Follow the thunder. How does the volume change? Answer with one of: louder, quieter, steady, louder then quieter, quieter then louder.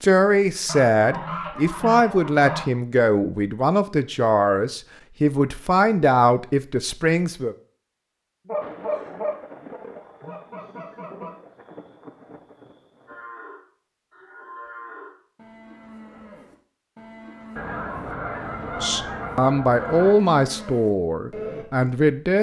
quieter.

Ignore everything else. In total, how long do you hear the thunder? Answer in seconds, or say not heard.
5 s.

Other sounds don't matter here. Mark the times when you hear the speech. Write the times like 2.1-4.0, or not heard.
0.0-7.5, 18.8-22.3.